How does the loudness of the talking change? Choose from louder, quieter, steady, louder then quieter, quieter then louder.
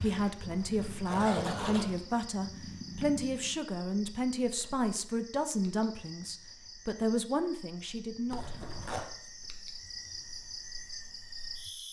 steady.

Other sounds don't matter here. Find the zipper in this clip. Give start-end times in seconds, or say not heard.
0.5-2.2, 8.3-9.1.